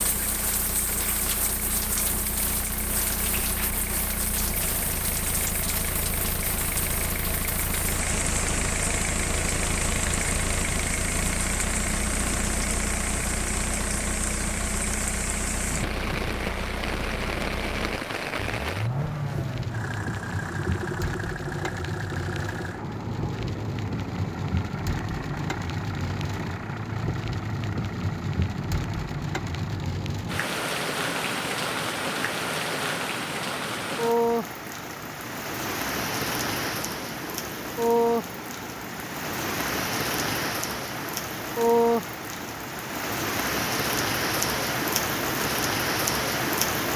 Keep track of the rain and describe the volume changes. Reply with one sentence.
The loudness of the rain goes up.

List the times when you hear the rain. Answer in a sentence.
The rain can be heard from 0.0 to 46.9 s.